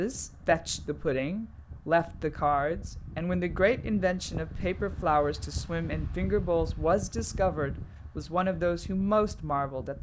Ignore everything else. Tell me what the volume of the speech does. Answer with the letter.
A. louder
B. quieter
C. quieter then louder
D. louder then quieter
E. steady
E.